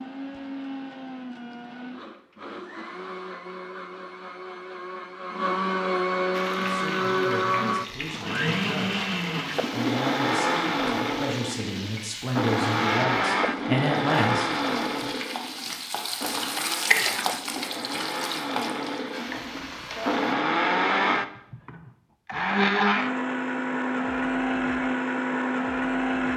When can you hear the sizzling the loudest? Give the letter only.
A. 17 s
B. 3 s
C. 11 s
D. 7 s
A.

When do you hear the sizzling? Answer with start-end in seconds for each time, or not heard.
6.3-20.4.